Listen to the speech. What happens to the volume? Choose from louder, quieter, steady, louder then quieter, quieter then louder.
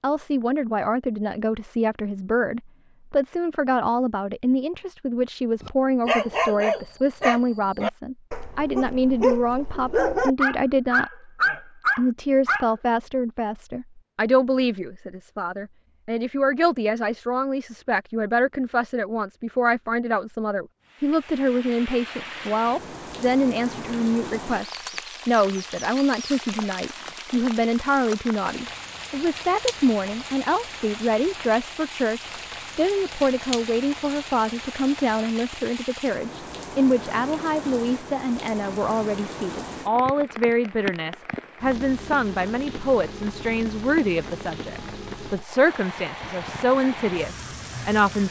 steady.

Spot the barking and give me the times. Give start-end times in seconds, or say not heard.
5.6-12.7.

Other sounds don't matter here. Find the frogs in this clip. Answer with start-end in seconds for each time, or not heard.
not heard.